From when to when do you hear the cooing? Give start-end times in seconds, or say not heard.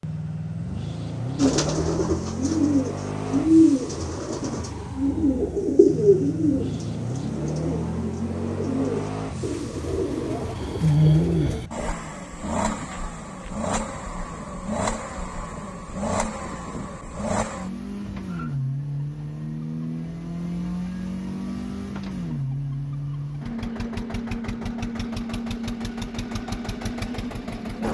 1.4-11.9.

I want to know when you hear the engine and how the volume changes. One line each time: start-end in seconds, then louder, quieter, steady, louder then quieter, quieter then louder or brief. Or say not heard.
0.0-27.8 steady.